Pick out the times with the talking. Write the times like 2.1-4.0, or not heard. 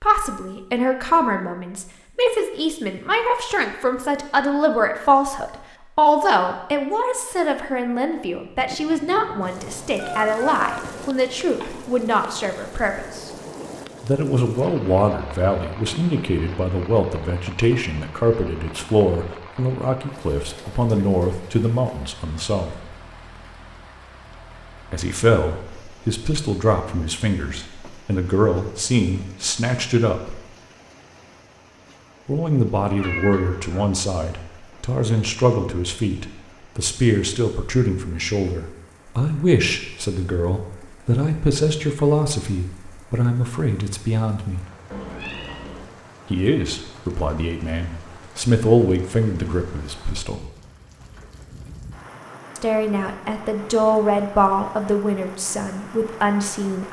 0.0-13.3, 14.0-22.9, 24.9-30.4, 32.2-44.6, 46.3-50.5, 52.5-56.8.